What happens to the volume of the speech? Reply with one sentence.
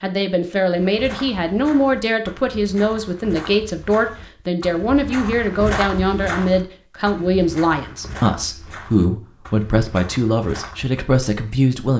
The loudness of the speech stays about the same.